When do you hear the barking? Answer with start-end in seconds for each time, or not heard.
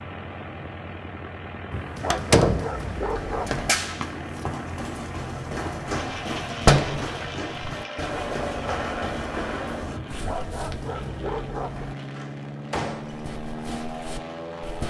1.7-3.6, 9.9-11.9.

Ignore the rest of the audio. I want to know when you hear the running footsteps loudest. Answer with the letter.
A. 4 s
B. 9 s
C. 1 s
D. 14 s
A.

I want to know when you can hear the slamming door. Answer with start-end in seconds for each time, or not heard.
2.1-2.8, 6.7-7.1, 11.6-13.2.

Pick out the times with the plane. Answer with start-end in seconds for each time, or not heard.
0.0-14.8.